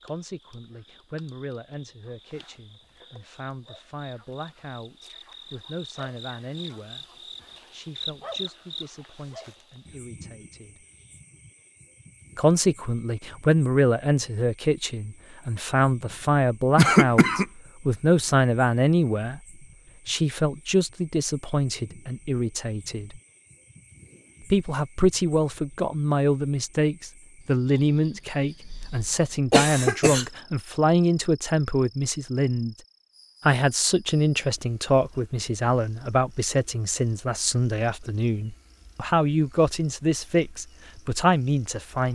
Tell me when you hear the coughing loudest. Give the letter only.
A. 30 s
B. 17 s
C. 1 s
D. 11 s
B.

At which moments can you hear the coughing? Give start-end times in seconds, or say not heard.
16.8-17.4, 28.6-30.2.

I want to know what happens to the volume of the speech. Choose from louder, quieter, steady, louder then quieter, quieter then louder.
louder.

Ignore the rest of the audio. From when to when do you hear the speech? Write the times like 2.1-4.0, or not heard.
0.0-7.0, 7.7-10.8, 12.3-19.4, 20.1-23.2, 24.5-32.8, 33.5-42.1.